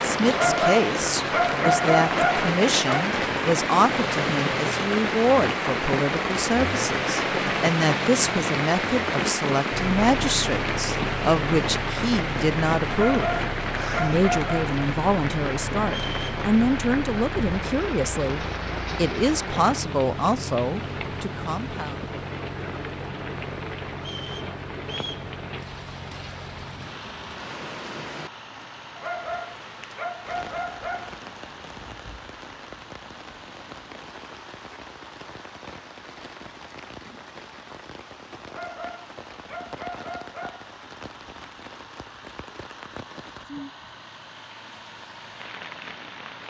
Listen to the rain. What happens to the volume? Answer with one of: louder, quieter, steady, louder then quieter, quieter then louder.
quieter.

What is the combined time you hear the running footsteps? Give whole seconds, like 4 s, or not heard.
not heard.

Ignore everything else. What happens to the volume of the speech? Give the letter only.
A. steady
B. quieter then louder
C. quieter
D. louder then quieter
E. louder
A.